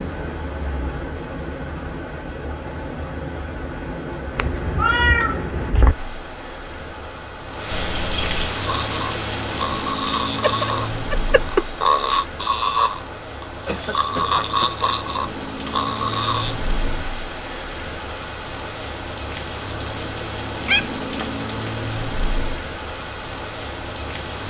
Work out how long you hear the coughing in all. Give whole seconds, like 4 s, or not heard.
2 s.